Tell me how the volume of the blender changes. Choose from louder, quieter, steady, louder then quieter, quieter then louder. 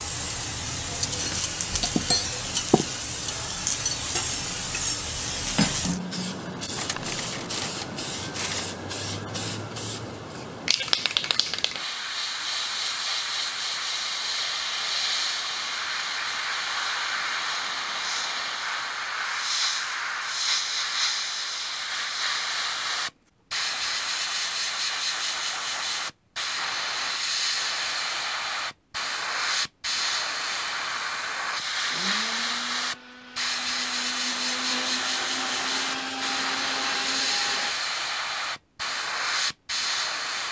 louder.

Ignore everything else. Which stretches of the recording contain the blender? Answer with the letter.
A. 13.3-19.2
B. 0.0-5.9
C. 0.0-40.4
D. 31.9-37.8
D.